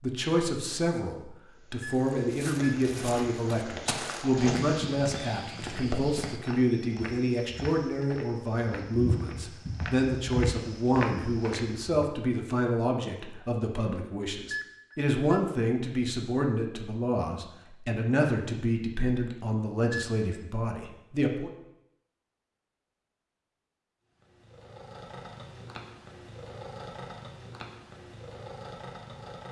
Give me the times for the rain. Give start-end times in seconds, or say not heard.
not heard.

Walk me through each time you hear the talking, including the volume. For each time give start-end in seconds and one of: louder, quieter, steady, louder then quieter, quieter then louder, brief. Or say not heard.
0.0-21.5 steady.